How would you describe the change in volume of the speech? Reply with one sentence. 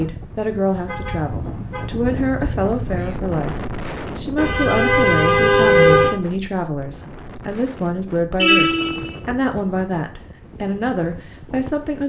The loudness of the speech stays about the same.